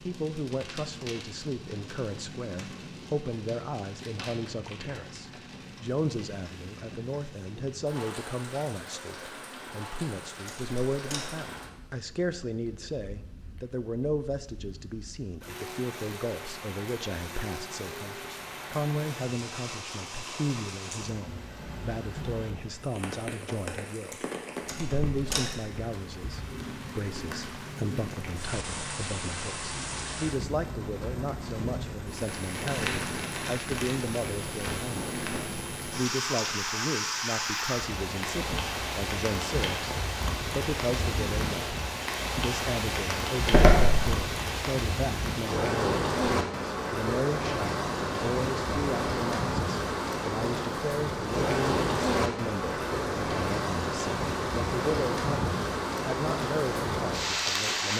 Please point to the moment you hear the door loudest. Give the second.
44 s.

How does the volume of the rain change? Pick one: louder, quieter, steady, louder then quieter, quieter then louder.
louder.